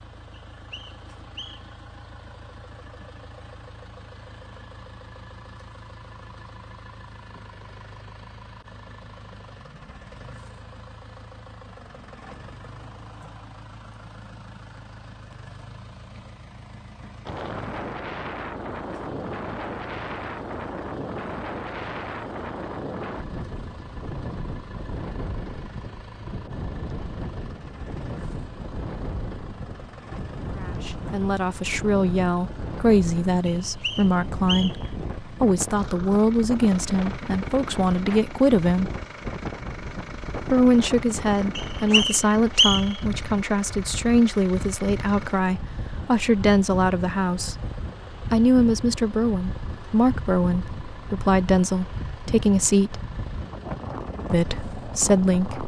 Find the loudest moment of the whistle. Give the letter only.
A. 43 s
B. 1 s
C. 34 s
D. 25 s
A.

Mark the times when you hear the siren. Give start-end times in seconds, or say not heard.
not heard.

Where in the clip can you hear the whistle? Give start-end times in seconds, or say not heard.
0.5-1.8, 33.5-34.9, 41.5-43.0.